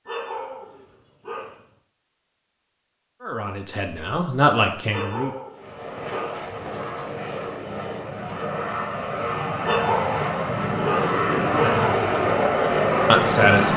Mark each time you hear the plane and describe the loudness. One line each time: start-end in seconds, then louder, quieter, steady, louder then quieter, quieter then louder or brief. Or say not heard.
5.5-13.7 louder.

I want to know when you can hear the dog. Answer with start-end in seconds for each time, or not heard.
0.1-1.6, 4.9-6.5, 9.6-12.0.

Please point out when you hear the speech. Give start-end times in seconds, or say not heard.
3.2-5.3, 13.1-13.7.